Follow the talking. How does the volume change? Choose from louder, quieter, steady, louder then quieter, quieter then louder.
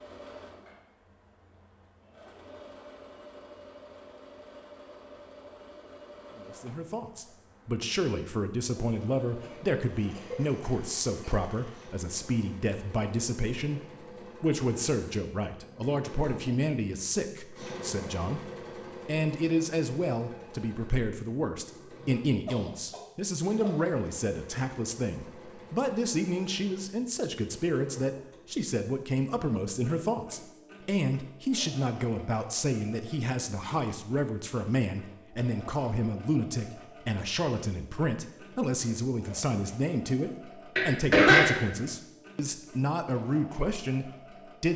steady.